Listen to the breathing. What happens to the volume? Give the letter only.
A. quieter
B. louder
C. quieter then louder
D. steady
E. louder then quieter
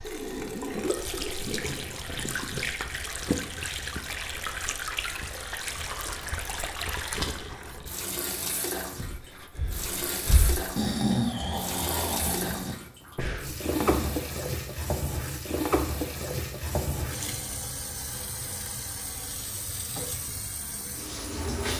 E.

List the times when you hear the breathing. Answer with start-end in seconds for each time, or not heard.
9.0-14.2.